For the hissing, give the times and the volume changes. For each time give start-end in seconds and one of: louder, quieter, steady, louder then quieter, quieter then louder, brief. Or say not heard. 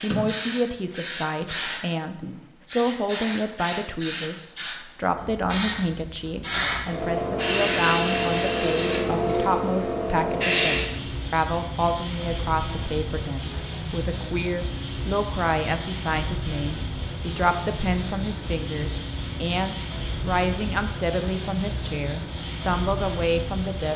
0.0-23.9 quieter.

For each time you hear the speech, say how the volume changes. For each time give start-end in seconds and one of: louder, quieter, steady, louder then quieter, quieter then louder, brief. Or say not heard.
0.0-23.9 steady.